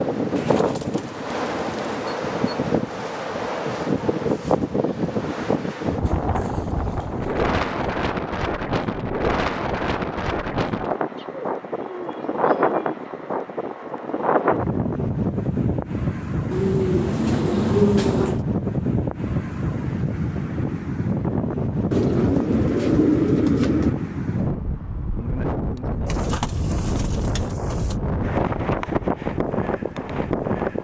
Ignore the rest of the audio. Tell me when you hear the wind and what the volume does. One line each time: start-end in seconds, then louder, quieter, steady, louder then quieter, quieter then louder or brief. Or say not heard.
0.0-30.7 steady.